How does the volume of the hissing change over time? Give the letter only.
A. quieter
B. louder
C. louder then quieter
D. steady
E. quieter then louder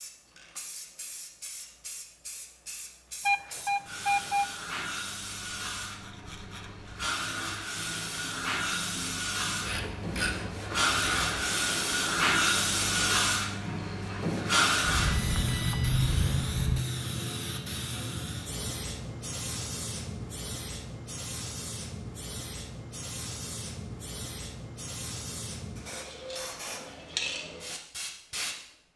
C.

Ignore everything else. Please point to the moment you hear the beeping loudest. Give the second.
4 s.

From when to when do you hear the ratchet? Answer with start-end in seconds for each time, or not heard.
9.6-11.4.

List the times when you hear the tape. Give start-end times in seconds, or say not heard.
not heard.